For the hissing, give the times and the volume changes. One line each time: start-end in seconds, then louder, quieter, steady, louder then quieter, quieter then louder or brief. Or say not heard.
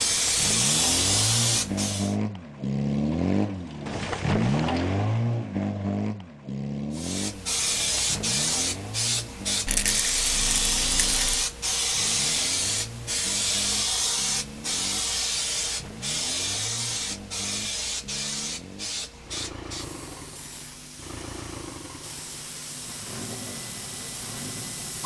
0.0-2.1 brief
6.9-25.0 quieter.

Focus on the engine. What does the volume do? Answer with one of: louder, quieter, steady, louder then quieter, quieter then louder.
quieter.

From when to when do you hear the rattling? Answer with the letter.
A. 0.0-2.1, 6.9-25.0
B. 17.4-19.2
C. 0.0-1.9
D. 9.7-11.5
D.